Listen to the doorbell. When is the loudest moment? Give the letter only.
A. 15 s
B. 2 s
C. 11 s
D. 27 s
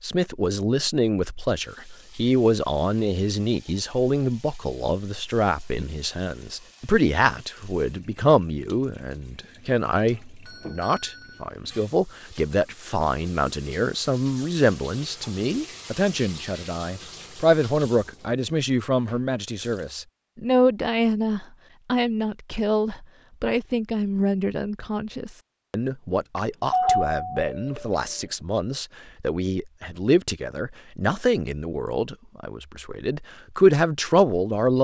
D.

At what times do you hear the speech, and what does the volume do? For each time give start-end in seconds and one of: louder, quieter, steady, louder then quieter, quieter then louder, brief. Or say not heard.
0.0-34.7 steady.